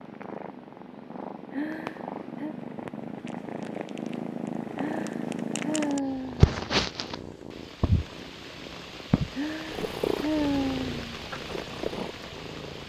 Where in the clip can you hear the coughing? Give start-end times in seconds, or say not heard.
not heard.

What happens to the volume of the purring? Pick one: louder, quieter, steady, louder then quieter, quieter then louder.
louder then quieter.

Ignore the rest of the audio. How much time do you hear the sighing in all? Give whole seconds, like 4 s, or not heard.
5 s.